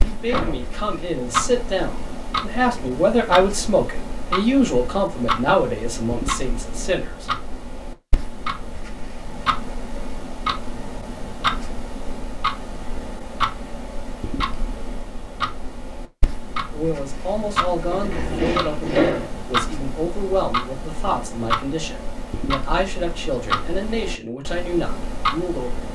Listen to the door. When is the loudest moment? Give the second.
19 s.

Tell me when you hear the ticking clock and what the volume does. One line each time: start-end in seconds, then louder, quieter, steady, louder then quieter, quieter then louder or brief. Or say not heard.
0.0-25.9 steady.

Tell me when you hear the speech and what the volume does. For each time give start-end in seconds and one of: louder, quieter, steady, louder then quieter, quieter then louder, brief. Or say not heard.
0.0-7.3 louder then quieter
16.7-25.9 steady.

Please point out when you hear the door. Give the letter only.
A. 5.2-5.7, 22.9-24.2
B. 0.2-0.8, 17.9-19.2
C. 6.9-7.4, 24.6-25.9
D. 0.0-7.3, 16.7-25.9
B.